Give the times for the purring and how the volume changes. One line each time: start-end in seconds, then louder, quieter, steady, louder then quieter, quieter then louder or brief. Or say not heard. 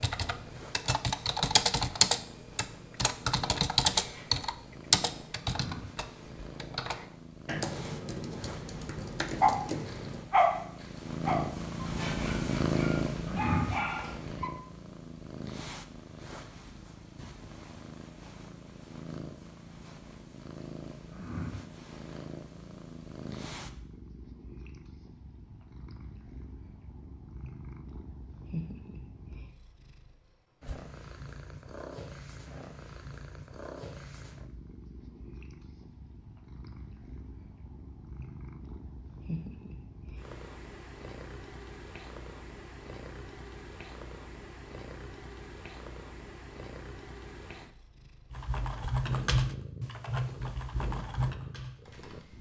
0.1-52.3 louder then quieter.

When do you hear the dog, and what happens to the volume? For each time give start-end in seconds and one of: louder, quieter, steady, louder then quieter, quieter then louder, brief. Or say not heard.
9.4-14.5 quieter then louder.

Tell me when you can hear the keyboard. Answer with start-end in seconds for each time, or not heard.
0.0-10.3, 48.3-52.3.